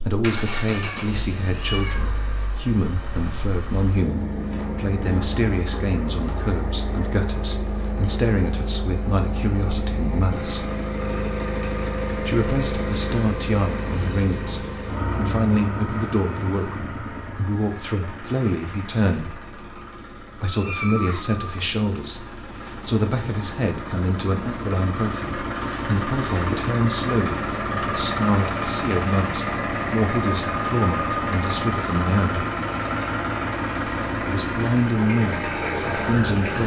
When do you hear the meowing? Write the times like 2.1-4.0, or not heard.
0.7-2.2, 20.4-21.4.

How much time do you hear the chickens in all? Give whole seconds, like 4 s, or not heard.
not heard.